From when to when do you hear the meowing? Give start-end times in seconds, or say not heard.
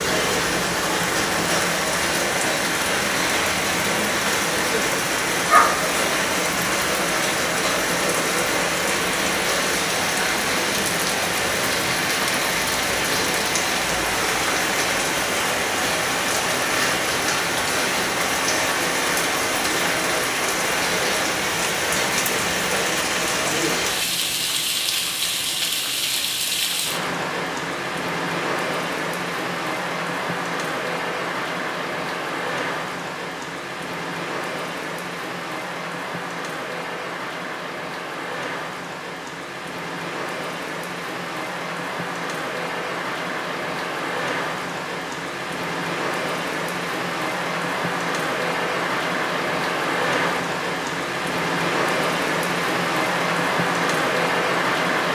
not heard.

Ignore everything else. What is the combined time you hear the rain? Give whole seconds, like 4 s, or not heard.
55 s.